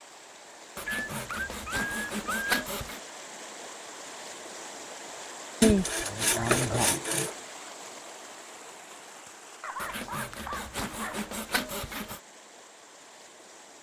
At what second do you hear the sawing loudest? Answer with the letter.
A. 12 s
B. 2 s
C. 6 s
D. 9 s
C.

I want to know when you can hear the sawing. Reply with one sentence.
You can hear the sawing from 0.8 to 3.0 s, from 5.6 to 7.3 s and from 9.8 to 12.2 s.